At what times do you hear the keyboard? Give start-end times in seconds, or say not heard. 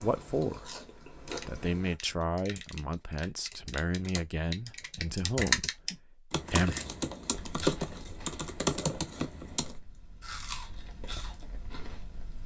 1.2-9.8.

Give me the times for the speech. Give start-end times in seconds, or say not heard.
0.0-0.7, 1.4-6.8.